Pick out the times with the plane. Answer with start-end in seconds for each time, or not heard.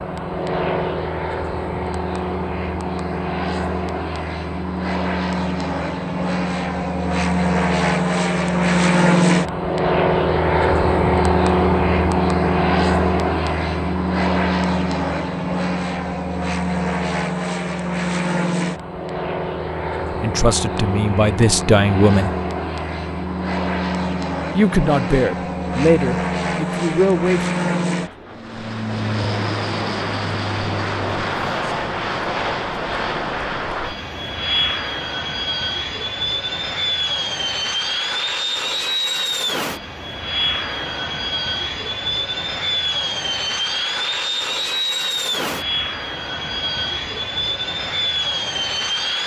0.0-49.2.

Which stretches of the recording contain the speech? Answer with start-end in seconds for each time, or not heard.
20.2-22.3, 24.5-27.4.